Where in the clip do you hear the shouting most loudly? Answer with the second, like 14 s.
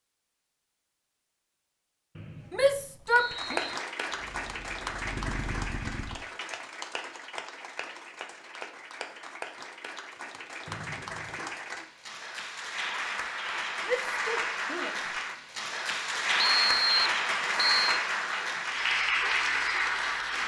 3 s.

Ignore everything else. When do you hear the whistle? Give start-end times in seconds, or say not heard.
2.1-3.8, 10.7-11.5, 16.4-18.0.